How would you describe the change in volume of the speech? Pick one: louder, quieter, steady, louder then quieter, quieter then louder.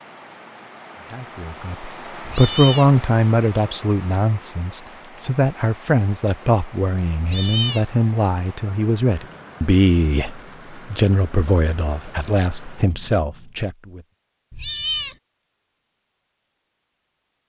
quieter.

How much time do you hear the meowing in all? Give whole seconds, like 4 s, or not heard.
2 s.